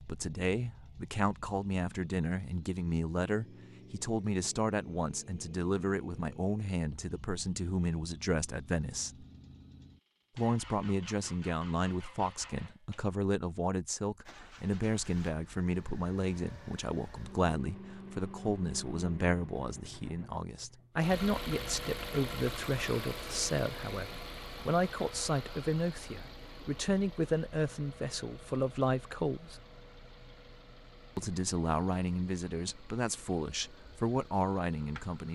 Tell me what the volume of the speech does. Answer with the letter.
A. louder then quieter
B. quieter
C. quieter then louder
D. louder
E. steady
E.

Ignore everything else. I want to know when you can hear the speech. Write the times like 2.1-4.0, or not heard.
0.0-9.2, 10.3-29.6, 31.1-35.3.